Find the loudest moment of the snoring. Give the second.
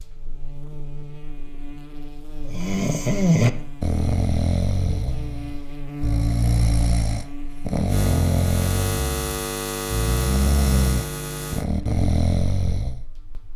3 s.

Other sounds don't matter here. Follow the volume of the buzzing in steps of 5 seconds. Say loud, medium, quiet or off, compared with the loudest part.
medium, loud, loud.